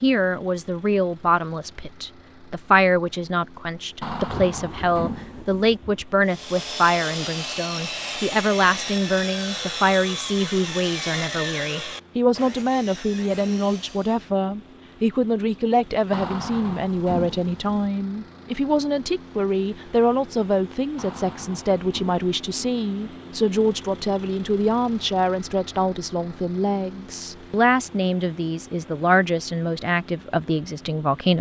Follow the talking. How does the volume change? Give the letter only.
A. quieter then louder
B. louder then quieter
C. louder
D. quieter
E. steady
E.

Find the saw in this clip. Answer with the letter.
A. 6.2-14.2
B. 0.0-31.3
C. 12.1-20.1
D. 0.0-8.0
A.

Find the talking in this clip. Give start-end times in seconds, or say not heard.
0.0-31.3.